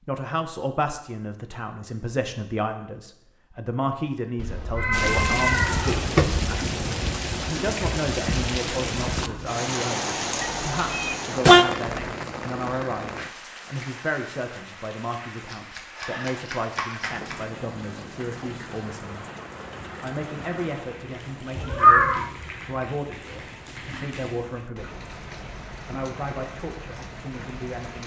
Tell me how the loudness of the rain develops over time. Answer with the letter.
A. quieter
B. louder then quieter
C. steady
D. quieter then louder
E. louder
A.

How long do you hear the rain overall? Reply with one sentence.
The rain can be heard for 23 seconds in total.